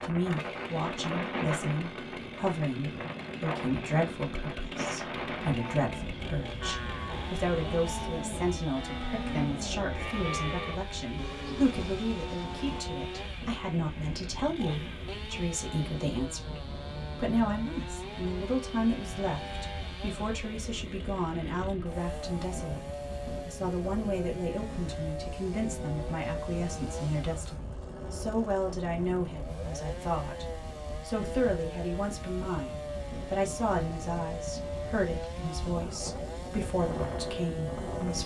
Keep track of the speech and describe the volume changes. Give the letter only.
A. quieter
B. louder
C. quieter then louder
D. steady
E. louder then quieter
D.